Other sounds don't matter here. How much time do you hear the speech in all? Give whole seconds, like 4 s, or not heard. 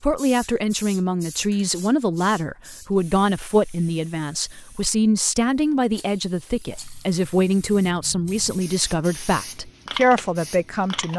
11 s.